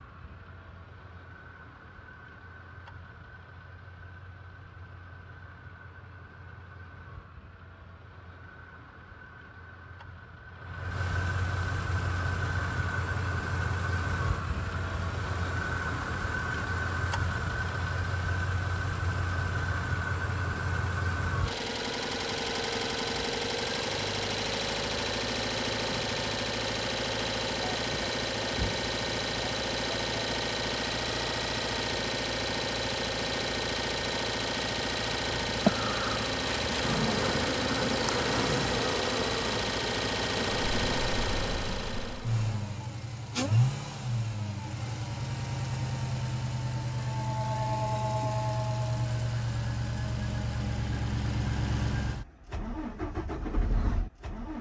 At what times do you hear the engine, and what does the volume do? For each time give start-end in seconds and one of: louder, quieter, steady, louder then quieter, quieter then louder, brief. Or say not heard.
0.0-54.5 louder.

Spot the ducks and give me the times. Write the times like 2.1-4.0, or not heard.
not heard.